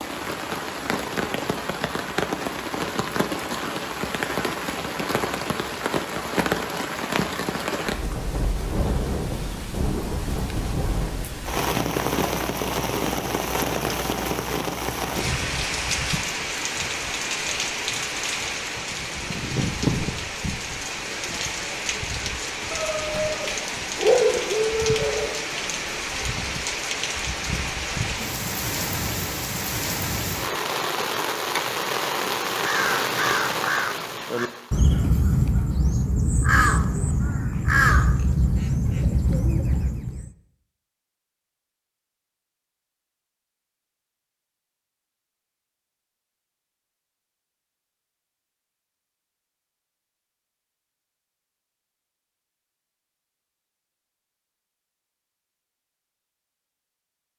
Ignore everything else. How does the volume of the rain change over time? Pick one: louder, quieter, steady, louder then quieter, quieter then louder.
steady.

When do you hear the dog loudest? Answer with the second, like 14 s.
24 s.